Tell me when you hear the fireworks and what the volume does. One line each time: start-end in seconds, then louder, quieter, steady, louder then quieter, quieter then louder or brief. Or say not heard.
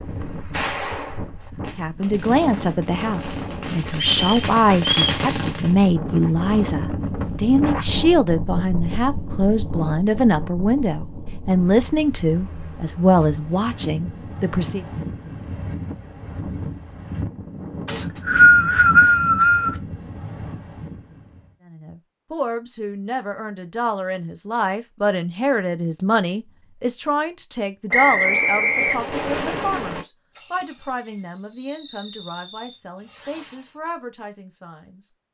0.0-5.8 quieter then louder
28.7-33.8 quieter.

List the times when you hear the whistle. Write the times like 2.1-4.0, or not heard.
4.0-5.2, 17.9-19.8, 27.9-29.0.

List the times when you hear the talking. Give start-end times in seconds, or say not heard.
1.8-14.8, 21.6-35.0.